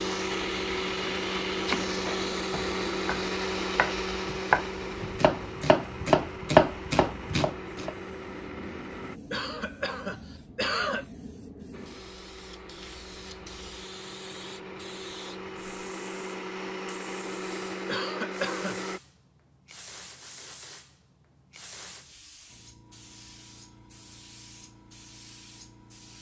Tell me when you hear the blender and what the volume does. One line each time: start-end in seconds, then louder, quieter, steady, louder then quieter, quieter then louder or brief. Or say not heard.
0.0-9.2 quieter
11.7-19.0 louder.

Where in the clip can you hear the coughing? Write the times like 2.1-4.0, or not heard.
9.3-11.1, 17.9-18.8.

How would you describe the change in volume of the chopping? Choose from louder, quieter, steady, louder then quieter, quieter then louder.
louder.